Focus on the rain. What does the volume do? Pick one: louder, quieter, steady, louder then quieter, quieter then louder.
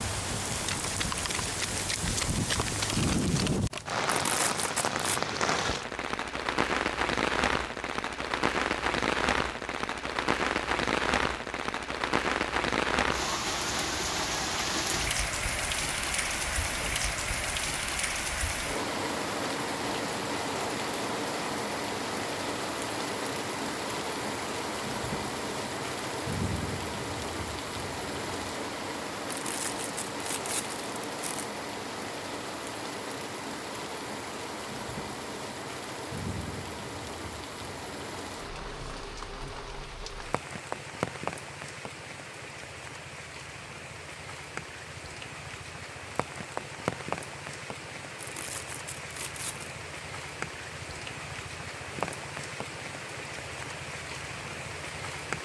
quieter.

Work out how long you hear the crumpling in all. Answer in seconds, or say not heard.
5 s.